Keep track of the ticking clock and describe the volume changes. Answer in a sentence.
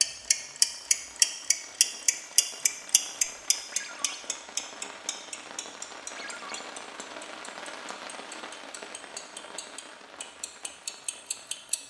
The volume of the ticking clock goes down, then up.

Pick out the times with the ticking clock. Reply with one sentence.
The ticking clock can be heard from 0.0 to 11.8 s.